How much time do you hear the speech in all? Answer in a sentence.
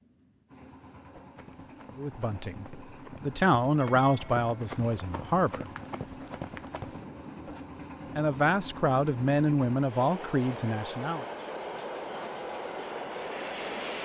You can hear the speech for 7 seconds altogether.